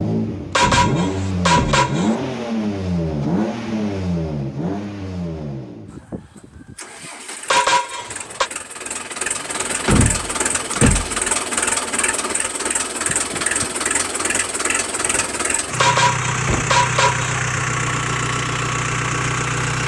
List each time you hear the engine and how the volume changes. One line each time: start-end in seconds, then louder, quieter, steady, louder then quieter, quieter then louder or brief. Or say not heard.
0.0-19.8 quieter then louder.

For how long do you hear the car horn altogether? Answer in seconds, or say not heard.
4 s.